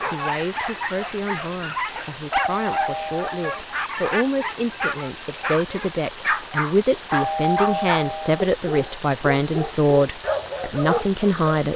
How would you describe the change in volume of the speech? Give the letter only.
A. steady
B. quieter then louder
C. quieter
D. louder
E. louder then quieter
D.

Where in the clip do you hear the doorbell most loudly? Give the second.
8 s.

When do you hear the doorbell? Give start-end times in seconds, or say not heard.
2.5-3.6, 7.1-8.4.